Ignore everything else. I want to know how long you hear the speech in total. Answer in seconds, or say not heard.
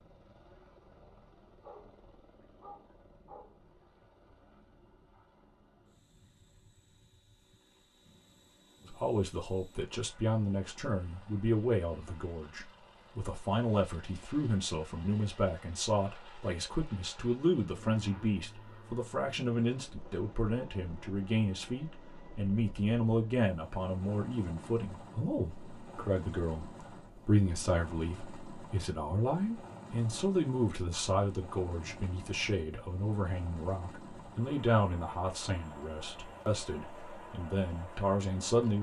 30 s.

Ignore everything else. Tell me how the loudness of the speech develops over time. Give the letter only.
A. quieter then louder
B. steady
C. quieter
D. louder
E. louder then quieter
B.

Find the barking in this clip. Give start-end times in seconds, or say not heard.
1.6-3.7.